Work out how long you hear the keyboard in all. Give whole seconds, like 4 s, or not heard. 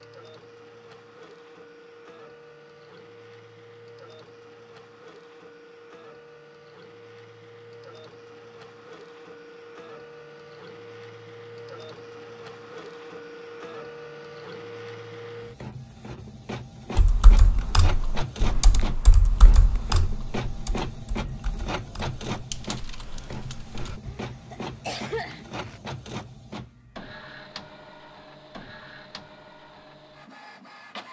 7 s.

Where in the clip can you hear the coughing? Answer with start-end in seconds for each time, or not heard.
24.1-25.8.